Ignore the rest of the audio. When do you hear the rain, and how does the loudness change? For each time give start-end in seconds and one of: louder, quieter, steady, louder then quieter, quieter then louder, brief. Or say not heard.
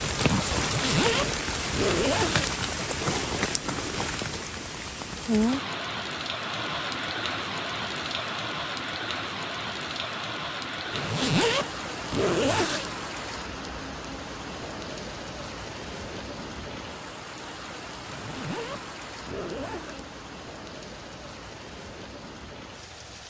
0.0-23.2 quieter.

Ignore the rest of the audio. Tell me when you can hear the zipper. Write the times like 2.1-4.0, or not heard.
0.6-2.6, 10.8-12.9, 18.0-20.1.